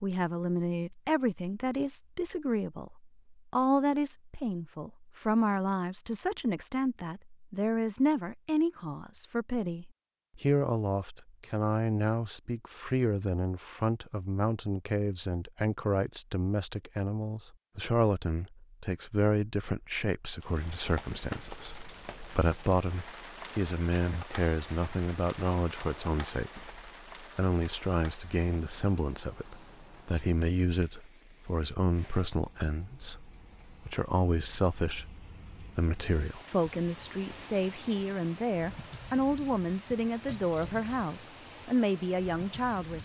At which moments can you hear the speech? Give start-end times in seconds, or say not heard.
0.0-43.0.